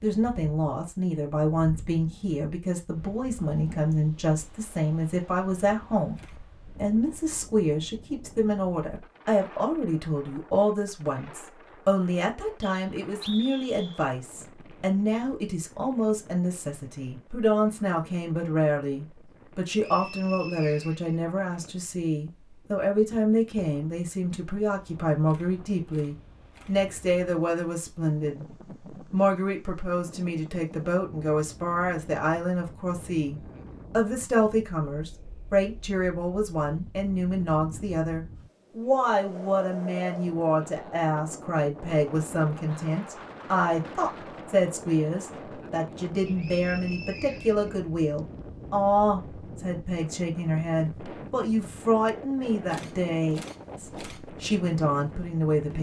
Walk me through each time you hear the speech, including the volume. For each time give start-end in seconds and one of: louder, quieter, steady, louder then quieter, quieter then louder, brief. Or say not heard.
0.0-28.4 steady
29.1-55.7 steady.